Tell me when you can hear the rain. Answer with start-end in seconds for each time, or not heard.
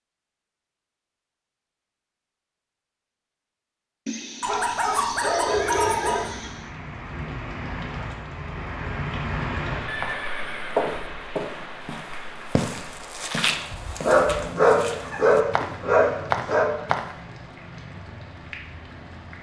5.5-19.3.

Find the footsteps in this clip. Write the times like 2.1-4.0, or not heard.
9.8-17.1.